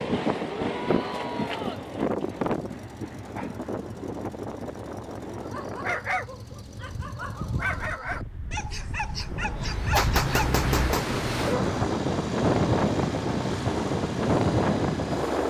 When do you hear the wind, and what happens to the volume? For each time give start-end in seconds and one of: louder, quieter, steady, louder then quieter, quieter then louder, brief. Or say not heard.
0.0-15.4 quieter then louder.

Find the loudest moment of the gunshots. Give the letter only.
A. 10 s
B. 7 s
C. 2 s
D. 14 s
A.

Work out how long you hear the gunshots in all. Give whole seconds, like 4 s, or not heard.
2 s.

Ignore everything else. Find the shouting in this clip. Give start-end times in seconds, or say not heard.
0.5-1.9.